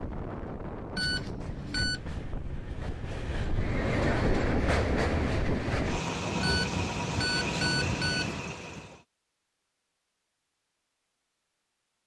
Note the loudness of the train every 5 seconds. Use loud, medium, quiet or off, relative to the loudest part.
loud, loud, off.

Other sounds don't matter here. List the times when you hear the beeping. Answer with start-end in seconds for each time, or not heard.
0.9-2.0, 6.4-8.4.